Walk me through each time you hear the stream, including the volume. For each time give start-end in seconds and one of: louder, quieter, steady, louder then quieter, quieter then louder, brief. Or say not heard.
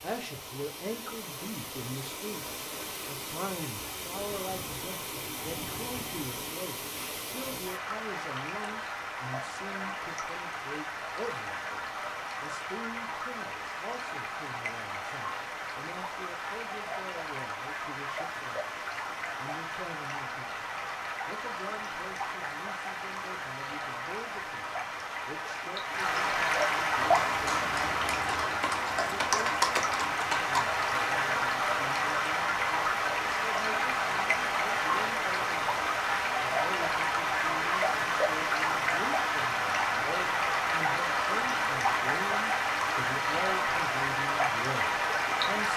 0.0-45.7 louder.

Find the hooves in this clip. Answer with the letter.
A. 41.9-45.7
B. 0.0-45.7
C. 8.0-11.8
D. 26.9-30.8
D.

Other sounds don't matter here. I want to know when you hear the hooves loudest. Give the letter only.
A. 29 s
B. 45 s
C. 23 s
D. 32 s
A.